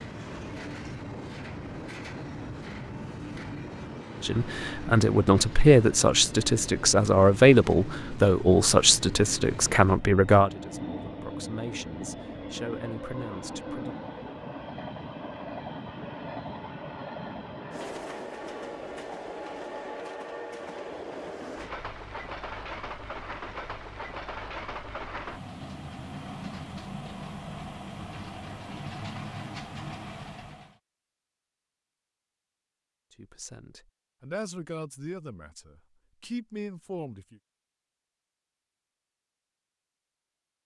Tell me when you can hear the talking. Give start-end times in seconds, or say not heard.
4.2-14.0, 33.1-37.4.